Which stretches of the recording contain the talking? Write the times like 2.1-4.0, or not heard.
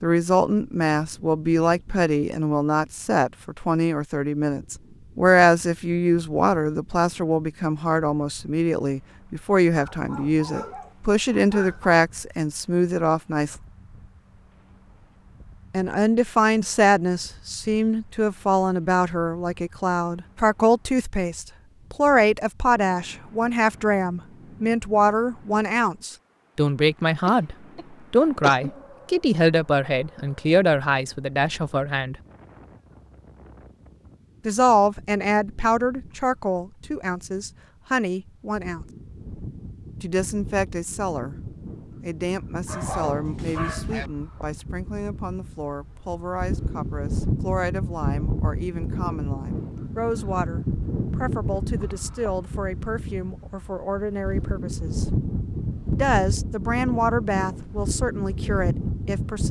0.0-13.6, 15.7-32.1, 34.5-38.8, 40.0-41.4, 42.0-55.0, 55.9-59.4.